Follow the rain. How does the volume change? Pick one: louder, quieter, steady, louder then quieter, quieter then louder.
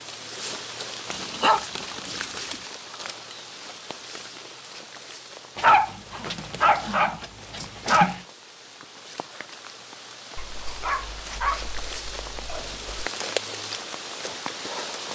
quieter then louder.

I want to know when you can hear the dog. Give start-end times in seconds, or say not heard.
1.1-2.5, 5.5-8.2, 10.3-12.8.